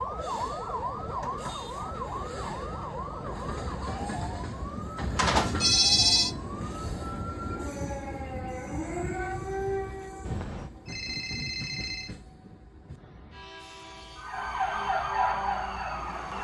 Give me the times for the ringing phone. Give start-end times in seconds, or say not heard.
5.2-6.3, 10.2-12.2.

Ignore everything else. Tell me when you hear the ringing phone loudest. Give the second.
6 s.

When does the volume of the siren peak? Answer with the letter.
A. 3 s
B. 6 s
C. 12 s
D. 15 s
D.